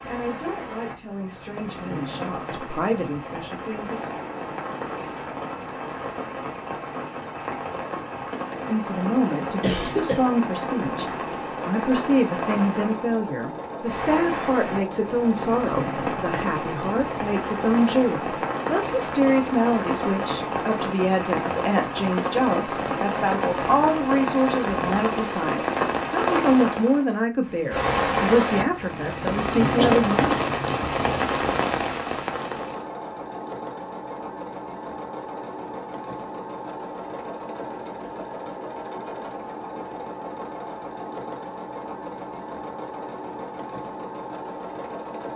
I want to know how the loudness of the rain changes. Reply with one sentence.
The volume of the rain goes up.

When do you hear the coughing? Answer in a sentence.
You can hear the coughing from 9.6 to 10.2 s and from 29.8 to 30.6 s.